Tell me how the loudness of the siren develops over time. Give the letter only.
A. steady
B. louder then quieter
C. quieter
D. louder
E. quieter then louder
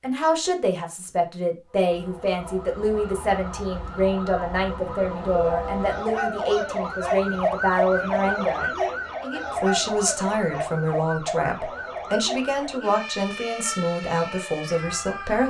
B.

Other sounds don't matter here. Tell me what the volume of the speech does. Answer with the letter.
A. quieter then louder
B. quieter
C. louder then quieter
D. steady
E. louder
D.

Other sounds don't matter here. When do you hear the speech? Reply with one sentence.
The speech can be heard from 0.0 to 8.7 s and from 9.5 to 15.4 s.